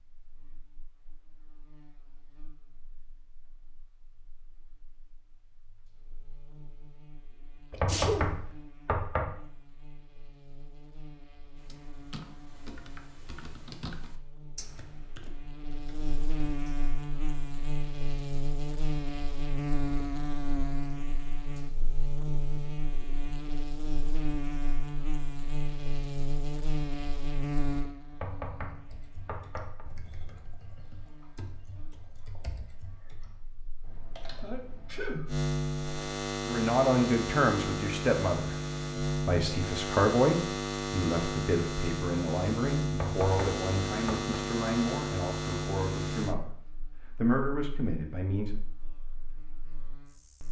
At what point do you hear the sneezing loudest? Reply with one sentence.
The volume of the sneezing peaks at 8 seconds.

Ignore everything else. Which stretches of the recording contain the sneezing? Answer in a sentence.
The sneezing can be heard from 7.7 to 8.2 s and from 34.4 to 35.4 s.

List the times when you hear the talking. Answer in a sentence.
The talking can be heard from 36.5 to 48.5 s.